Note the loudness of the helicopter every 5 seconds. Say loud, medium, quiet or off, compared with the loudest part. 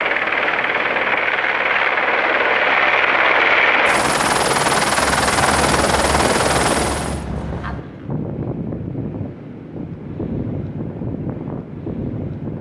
loud, loud, off.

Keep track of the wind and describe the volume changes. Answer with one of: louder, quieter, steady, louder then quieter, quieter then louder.
steady.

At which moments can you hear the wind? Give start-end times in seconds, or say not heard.
5.0-12.5.